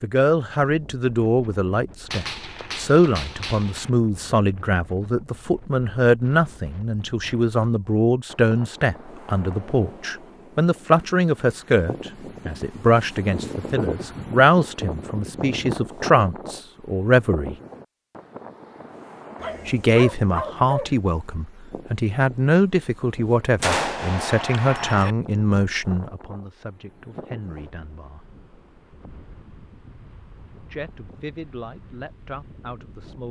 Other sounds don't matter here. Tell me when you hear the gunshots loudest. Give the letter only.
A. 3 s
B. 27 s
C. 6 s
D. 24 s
D.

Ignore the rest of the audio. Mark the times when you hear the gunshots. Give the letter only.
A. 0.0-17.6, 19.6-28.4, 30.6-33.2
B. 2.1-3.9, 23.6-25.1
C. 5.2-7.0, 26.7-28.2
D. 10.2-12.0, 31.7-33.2
B.